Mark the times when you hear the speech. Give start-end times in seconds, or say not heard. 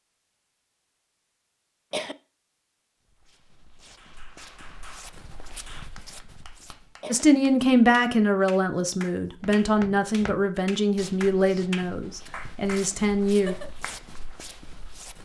7.1-13.6.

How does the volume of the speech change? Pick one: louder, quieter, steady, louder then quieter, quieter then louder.
quieter.